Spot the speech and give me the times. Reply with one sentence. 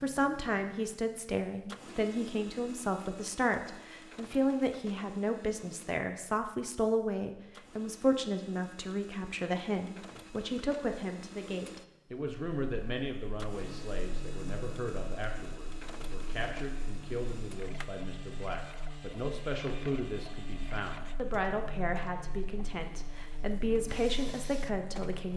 The speech can be heard from 0.0 to 25.3 s.